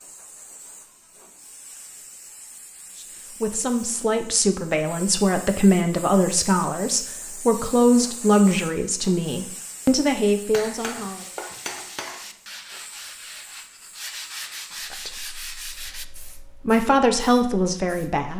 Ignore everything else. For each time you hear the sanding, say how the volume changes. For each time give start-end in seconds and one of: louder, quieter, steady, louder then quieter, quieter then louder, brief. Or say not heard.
10.8-16.1 louder.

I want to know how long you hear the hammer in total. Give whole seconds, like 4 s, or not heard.
2 s.